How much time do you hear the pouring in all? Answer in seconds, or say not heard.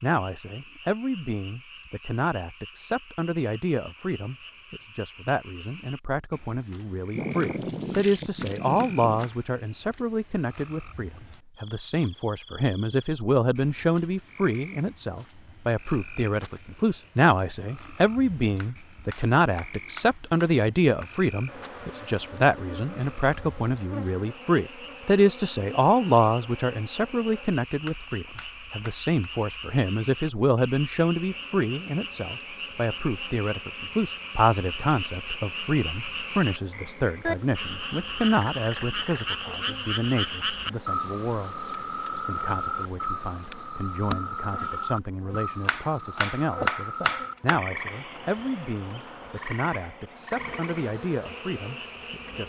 2 s.